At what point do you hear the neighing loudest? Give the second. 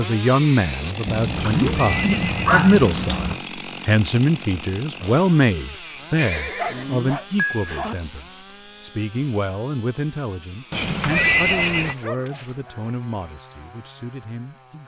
11 s.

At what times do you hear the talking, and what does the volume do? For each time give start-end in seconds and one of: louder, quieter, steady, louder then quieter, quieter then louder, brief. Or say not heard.
0.0-14.8 quieter.